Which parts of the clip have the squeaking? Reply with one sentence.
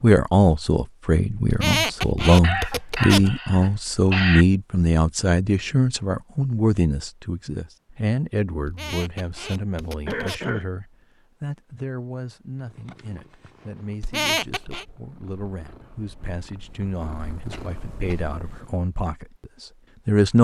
You can hear the squeaking from 1.4 to 3.4 s, from 8.7 to 10.6 s and from 14.0 to 14.8 s.